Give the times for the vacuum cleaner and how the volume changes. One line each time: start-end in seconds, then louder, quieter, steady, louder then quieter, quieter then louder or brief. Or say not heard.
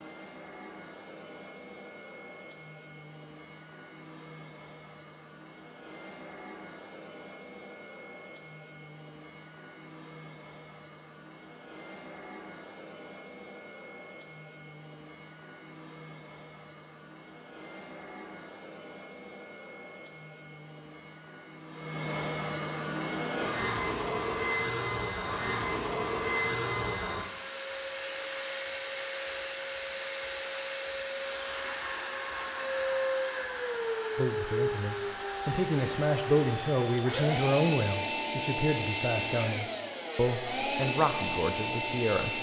0.0-42.3 louder.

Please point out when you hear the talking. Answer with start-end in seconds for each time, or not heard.
34.1-42.3.